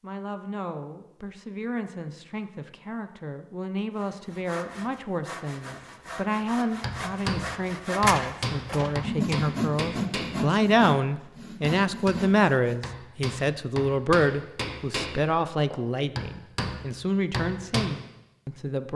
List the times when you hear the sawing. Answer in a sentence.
The sawing can be heard from 4.0 to 12.8 s.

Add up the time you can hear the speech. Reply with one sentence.
You can hear the speech for 19 seconds altogether.